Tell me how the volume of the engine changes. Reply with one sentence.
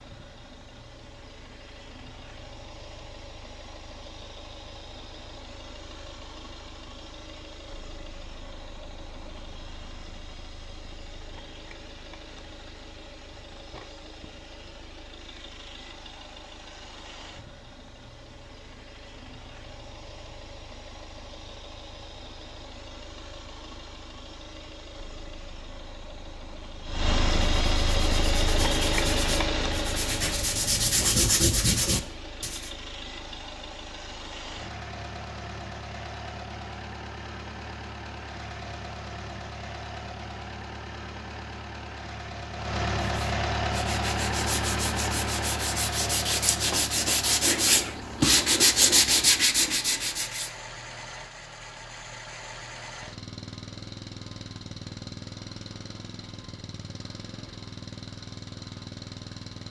The loudness of the engine goes up, then down.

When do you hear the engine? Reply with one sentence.
The engine can be heard from 0.0 to 59.6 s.